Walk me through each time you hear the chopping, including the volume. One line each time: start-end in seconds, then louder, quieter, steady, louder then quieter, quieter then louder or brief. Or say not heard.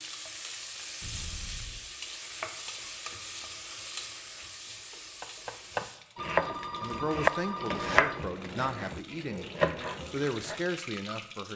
5.2-10.7 quieter then louder.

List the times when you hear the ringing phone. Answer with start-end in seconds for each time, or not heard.
1.0-1.9, 6.2-8.2.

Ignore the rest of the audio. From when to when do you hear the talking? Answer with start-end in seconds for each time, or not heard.
6.8-11.5.